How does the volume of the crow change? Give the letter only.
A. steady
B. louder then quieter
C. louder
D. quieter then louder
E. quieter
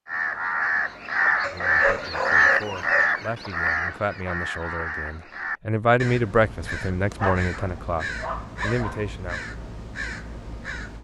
E.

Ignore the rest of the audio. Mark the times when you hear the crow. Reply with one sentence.
The crow can be heard from 0.1 to 11.0 s.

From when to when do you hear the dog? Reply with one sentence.
The dog can be heard from 1.4 to 3.1 s and from 7.2 to 9.1 s.